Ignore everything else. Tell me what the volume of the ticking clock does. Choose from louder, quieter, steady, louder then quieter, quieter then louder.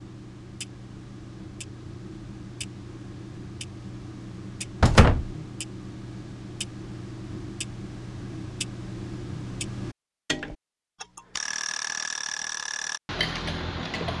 louder.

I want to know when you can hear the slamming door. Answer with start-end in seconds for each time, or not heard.
4.8-5.3.